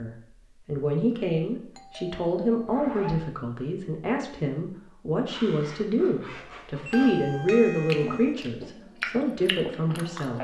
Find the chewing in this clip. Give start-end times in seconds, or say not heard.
7.9-10.3.